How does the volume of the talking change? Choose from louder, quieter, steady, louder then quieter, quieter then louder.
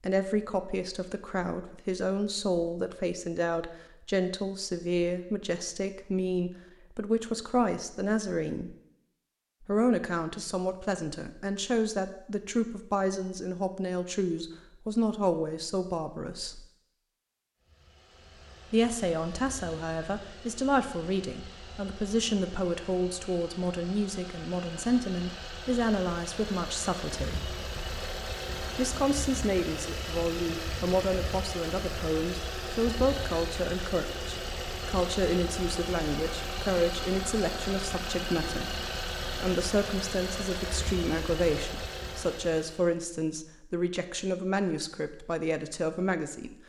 steady.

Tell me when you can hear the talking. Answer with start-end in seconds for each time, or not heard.
0.0-8.8, 9.7-16.6, 18.7-27.5, 28.8-38.8, 39.4-46.5.